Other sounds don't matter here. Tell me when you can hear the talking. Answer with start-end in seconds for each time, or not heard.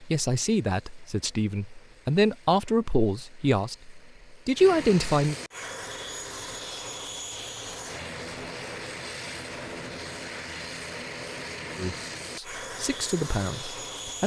0.0-5.3, 11.8-14.2.